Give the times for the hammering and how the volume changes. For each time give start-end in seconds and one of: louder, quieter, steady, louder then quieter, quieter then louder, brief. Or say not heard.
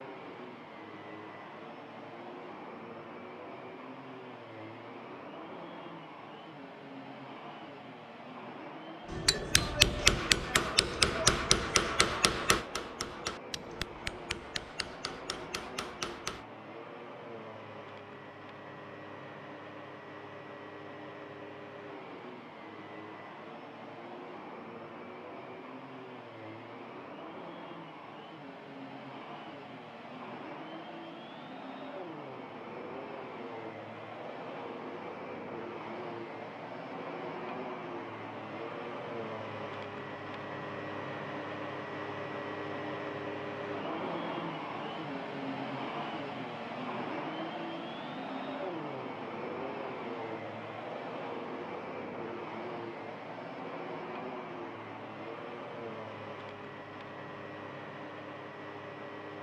9.1-16.4 quieter.